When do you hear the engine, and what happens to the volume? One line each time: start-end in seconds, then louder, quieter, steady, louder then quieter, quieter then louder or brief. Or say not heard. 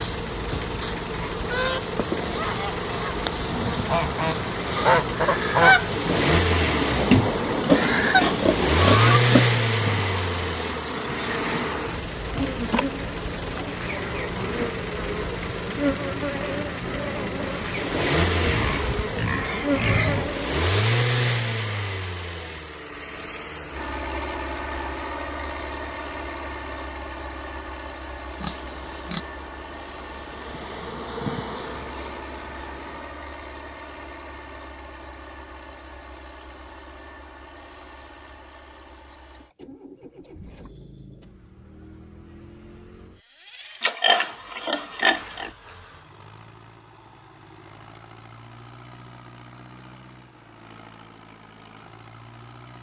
0.0-52.7 quieter.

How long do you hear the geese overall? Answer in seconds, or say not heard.
8 s.